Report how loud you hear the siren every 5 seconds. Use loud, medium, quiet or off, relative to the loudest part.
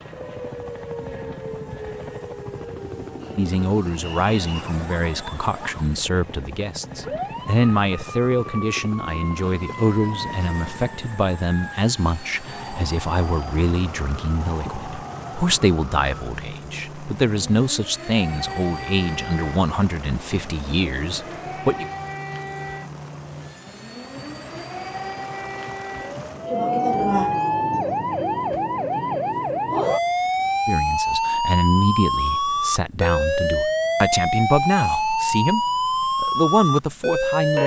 quiet, quiet, quiet, quiet, quiet, loud, loud, loud.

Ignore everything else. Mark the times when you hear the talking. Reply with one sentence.
You can hear the talking from 3.4 to 21.9 s and from 30.6 to 37.6 s.